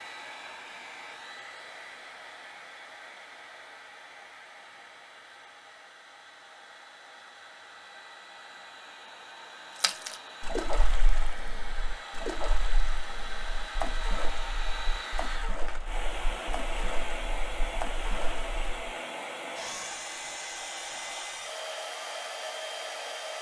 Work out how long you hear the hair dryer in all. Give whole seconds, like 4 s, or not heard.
23 s.